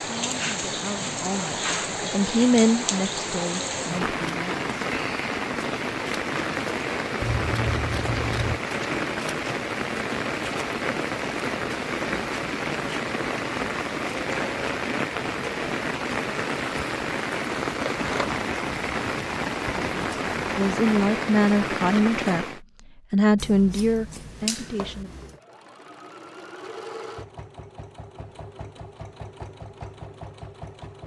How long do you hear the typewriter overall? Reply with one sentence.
The typewriter can't be heard in this clip.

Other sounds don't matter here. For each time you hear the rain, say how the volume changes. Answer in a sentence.
You can hear the rain from 0.0 to 22.6 s, at a steady volume.